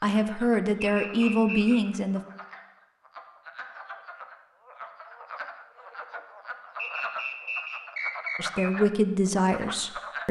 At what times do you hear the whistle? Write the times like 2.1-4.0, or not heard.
0.8-1.9, 6.8-8.6.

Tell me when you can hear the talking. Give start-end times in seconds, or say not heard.
0.0-2.2, 8.3-10.2.